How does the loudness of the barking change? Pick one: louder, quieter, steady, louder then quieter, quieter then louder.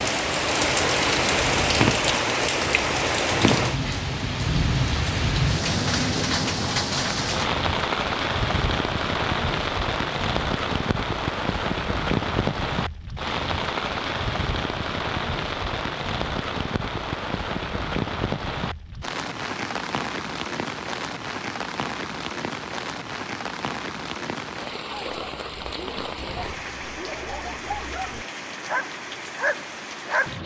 louder.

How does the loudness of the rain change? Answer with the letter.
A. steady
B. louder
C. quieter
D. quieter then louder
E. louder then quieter
C.